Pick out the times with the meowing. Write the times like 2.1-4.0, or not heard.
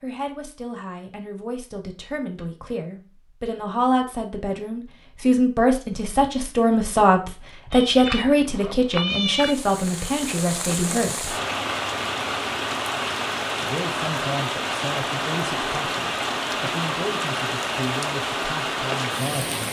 7.7-9.6.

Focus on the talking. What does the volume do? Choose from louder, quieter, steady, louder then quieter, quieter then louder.
louder then quieter.